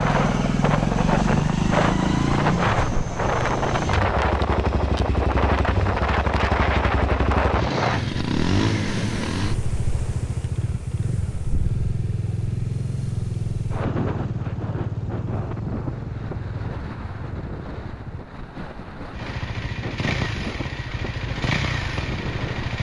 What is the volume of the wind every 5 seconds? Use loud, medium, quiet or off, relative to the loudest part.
loud, loud, medium, medium, medium.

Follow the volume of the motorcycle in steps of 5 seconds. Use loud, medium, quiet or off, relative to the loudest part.
loud, loud, medium, medium, medium.